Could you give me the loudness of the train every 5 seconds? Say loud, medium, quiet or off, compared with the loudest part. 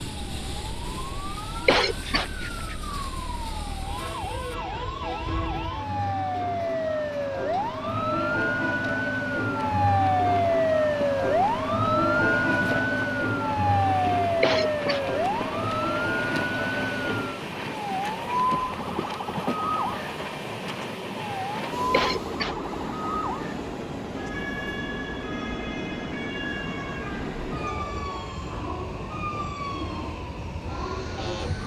medium, medium, loud, loud, loud, loud, loud.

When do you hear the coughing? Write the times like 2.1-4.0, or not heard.
1.6-2.2, 14.4-15.0, 21.9-22.6.